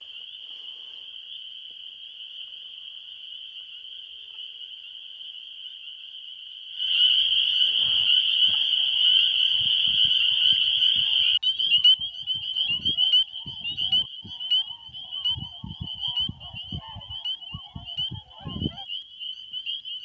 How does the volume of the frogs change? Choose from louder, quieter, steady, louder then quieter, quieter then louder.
louder then quieter.